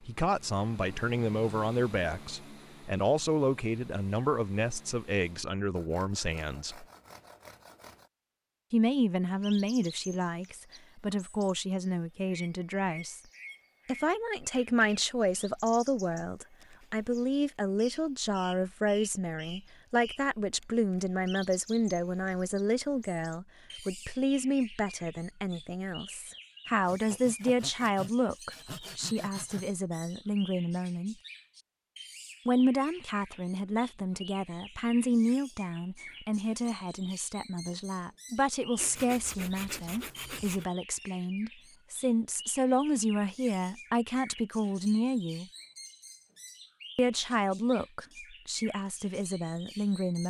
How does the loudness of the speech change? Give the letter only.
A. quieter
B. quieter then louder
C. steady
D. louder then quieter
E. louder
C.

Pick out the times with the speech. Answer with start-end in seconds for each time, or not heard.
0.0-6.8, 8.7-13.2, 13.8-31.1, 32.5-45.5, 47.0-50.2.